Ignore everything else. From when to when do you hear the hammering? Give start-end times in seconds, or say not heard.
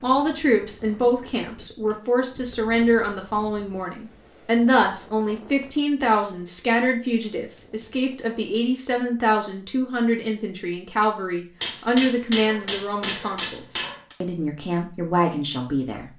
0.8-2.7, 11.6-14.2.